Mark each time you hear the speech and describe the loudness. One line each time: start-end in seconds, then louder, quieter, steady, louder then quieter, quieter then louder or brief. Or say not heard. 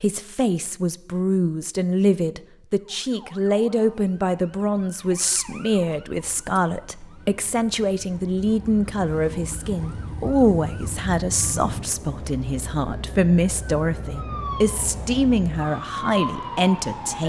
0.0-17.2 steady.